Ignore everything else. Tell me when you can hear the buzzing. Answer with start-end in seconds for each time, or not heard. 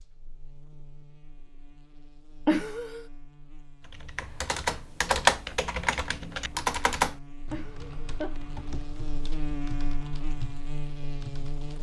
0.0-11.7.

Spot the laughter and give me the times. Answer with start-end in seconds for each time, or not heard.
2.5-3.0, 7.5-8.3.